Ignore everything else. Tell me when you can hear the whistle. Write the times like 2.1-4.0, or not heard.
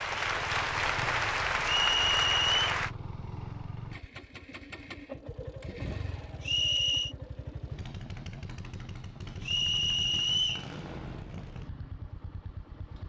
1.8-2.8, 6.4-7.2, 9.4-10.7.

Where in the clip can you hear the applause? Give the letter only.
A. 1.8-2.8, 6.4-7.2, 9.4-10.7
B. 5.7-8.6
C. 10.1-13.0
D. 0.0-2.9
D.